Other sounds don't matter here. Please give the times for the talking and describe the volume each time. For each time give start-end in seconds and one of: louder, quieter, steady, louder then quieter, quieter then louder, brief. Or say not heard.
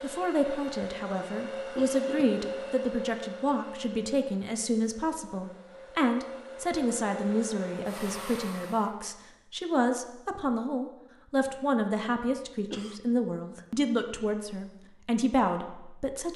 0.0-16.3 steady.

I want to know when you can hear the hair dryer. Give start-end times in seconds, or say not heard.
0.0-8.9.